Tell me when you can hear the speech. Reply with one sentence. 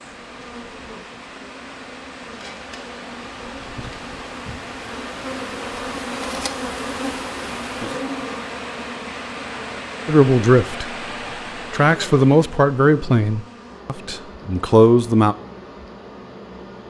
You can hear the speech from 10.1 to 10.9 s and from 11.7 to 15.3 s.